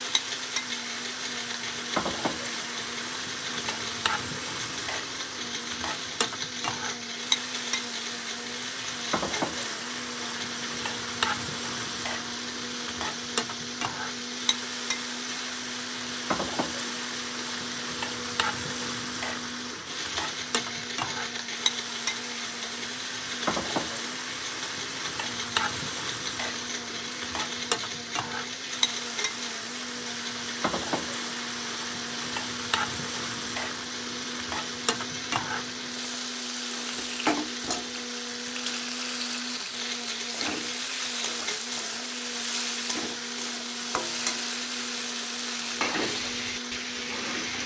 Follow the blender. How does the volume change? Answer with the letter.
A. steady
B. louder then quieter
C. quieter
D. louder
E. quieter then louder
A.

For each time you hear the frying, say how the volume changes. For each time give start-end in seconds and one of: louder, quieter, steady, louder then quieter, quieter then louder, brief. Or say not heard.
0.0-47.6 steady.